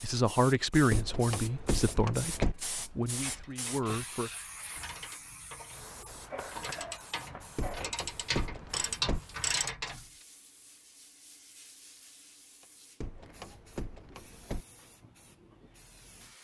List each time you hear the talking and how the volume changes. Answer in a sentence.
The talking can be heard from 0.0 to 4.3 s, getting quieter.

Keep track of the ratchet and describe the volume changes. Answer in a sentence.
The loudness of the ratchet goes up.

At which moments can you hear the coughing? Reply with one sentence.
You can hear the coughing from 6.3 to 8.0 s.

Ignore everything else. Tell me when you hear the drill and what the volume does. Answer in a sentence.
The drill can't be heard in this clip.